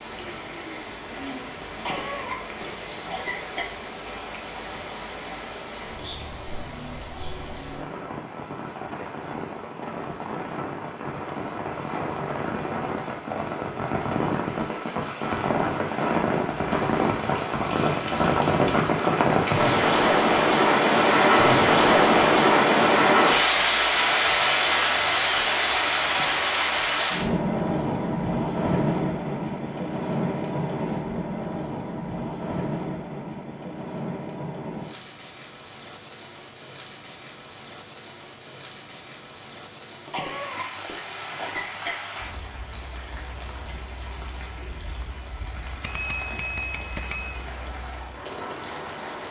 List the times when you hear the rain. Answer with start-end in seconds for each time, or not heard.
0.0-49.2.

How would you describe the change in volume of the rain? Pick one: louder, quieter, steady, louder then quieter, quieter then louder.
louder then quieter.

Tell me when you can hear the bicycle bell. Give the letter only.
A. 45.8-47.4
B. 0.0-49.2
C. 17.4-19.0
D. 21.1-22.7
A.